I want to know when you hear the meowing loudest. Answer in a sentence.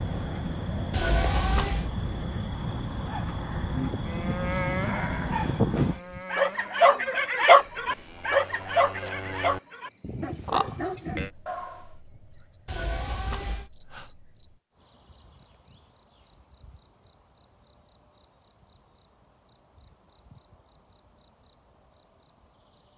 The volume of the meowing peaks at 1 second.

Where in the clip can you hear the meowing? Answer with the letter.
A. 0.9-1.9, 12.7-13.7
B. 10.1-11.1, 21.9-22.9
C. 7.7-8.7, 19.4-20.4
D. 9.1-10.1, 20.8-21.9
A.